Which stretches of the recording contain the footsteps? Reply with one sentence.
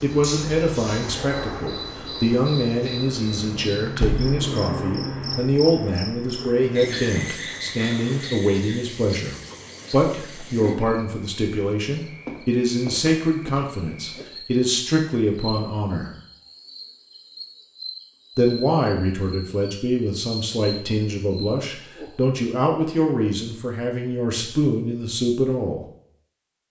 You can't hear the footsteps here.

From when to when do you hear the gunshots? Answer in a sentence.
The gunshots can't be heard in this clip.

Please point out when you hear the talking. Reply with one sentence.
You can hear the talking from 0.0 to 16.1 s and from 18.4 to 25.9 s.